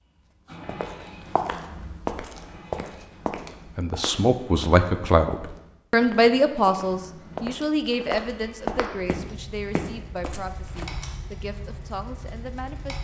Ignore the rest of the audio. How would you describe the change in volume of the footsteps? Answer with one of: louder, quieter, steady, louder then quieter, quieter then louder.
quieter then louder.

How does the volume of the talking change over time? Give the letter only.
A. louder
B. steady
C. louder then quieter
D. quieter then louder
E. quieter
E.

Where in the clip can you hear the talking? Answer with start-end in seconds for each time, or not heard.
3.8-12.9.